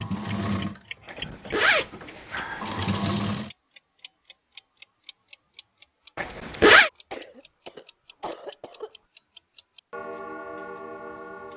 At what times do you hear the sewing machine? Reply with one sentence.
You can hear the sewing machine from 0.0 to 3.5 s.